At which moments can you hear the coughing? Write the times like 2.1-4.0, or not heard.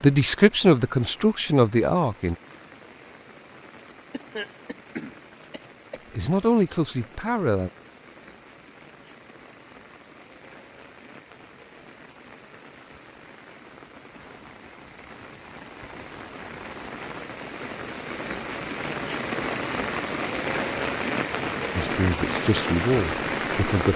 4.1-6.0.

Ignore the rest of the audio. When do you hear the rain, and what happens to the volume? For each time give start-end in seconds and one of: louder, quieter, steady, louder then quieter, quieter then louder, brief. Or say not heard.
0.0-23.9 louder.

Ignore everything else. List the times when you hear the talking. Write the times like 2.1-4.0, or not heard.
0.0-2.4, 6.1-7.7, 21.8-23.9.